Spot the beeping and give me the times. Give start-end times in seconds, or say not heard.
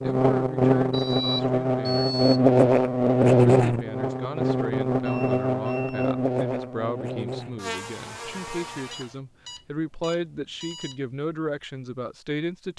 0.9-2.4, 5.0-6.2, 8.9-11.0.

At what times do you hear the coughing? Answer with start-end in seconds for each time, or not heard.
not heard.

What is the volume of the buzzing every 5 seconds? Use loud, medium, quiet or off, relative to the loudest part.
loud, medium, off.